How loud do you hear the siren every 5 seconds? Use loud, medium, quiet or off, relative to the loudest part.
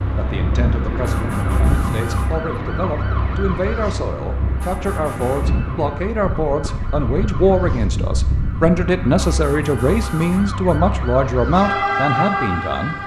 medium, medium, loud.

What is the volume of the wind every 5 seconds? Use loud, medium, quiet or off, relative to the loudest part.
loud, loud, off.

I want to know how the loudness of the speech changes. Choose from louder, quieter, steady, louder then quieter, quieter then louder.
louder.